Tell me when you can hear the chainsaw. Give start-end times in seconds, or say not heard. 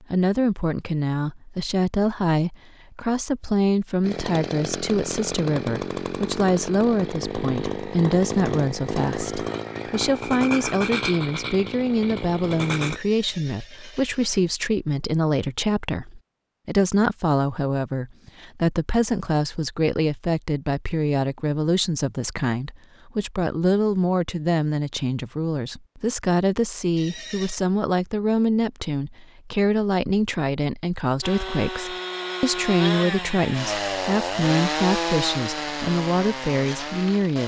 4.0-13.0, 31.2-37.4.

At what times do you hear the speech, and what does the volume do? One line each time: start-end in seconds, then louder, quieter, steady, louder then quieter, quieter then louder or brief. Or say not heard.
0.0-37.4 steady.